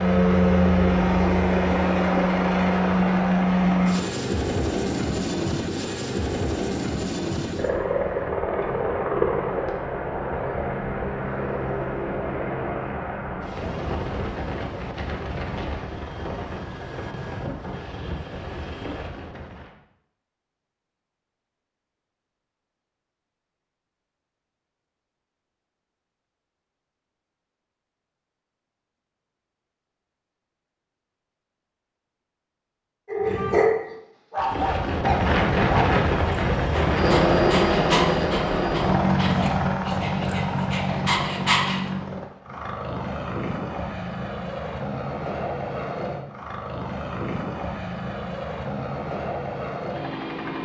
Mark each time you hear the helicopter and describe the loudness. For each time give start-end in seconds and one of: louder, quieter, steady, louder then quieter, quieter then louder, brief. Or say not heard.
0.0-19.8 quieter
34.4-50.6 quieter.